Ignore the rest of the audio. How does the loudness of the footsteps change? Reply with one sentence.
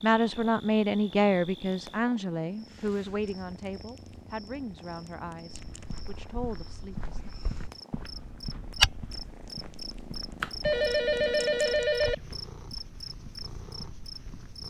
The loudness of the footsteps goes up, then down.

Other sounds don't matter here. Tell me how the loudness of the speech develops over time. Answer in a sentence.
The volume of the speech goes down.